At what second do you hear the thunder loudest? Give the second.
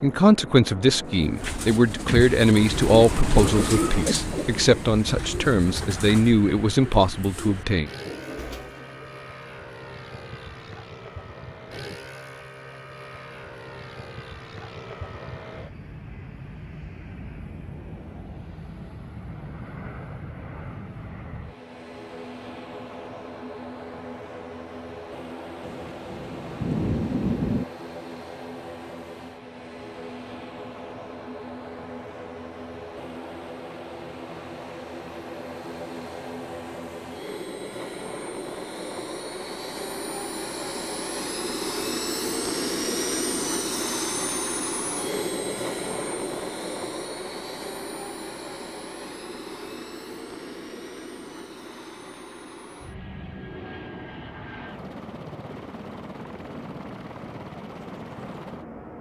27 s.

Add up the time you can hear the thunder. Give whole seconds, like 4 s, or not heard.
2 s.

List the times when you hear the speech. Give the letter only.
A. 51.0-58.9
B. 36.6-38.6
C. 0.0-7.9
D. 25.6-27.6
C.